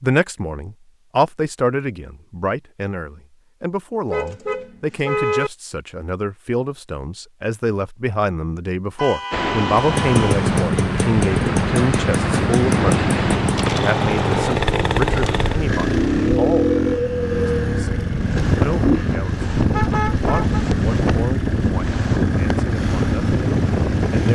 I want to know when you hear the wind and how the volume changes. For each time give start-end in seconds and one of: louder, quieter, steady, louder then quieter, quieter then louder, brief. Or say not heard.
9.3-24.3 steady.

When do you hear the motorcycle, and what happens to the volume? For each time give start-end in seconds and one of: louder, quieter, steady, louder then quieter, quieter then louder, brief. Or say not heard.
9.8-24.3 steady.